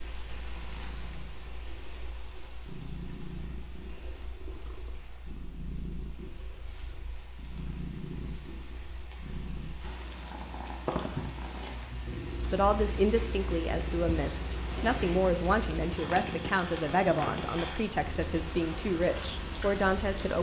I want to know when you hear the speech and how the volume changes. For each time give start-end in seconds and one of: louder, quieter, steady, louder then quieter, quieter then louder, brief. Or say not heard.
12.4-20.3 steady.